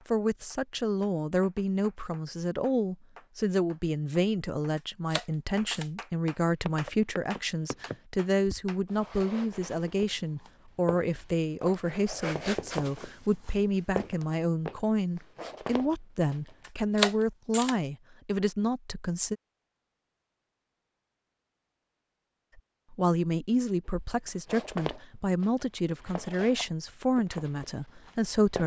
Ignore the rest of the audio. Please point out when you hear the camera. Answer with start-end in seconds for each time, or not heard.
4.8-5.9, 16.6-17.8.